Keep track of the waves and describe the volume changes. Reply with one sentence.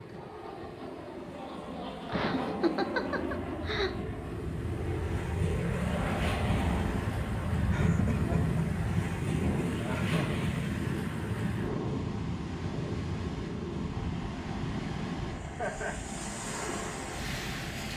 The volume of the waves goes up.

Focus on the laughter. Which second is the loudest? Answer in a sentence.
The volume of the laughter peaks at 3 seconds.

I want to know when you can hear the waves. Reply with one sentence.
You can hear the waves from 0.0 to 17.9 s.